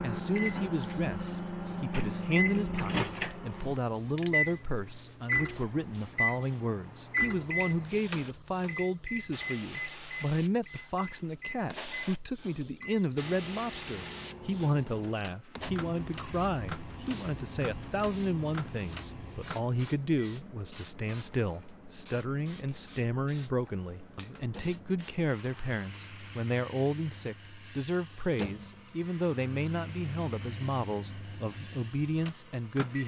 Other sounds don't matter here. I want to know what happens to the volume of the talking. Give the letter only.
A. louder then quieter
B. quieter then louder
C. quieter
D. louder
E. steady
E.